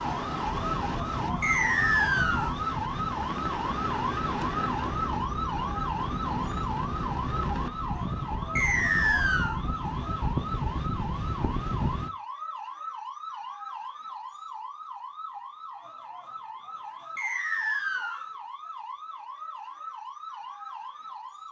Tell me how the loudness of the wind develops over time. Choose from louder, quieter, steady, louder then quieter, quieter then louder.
steady.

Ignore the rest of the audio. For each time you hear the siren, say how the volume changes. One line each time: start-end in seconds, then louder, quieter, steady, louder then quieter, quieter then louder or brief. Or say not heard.
0.0-21.4 quieter.